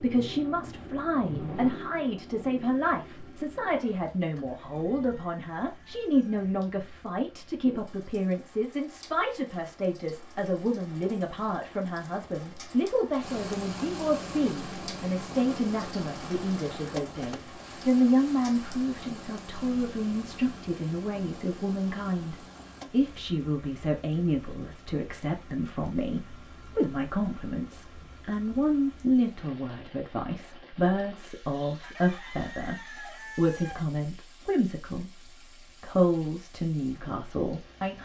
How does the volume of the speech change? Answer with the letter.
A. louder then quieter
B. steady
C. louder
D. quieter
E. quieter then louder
B.